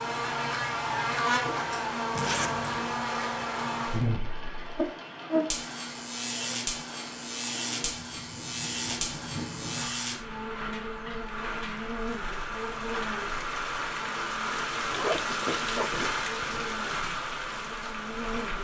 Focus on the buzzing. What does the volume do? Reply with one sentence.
The loudness of the buzzing goes down.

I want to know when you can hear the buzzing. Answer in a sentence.
The buzzing can be heard from 0.0 to 18.5 s.